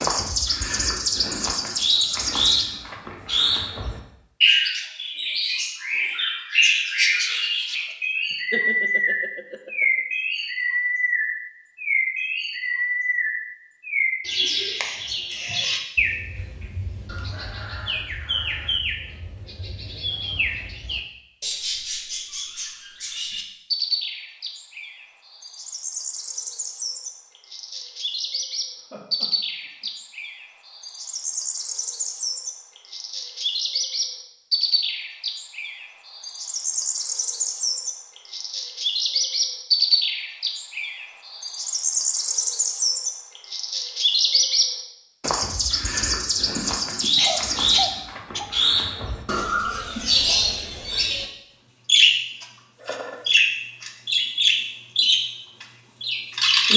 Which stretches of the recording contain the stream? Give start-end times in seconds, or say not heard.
not heard.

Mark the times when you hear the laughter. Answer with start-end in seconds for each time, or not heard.
8.3-9.8, 28.9-29.9, 46.5-48.5.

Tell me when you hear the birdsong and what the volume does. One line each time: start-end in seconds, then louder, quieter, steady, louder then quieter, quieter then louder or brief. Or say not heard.
0.0-51.2 quieter then louder
51.9-56.7 louder then quieter.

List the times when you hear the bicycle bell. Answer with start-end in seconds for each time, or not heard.
not heard.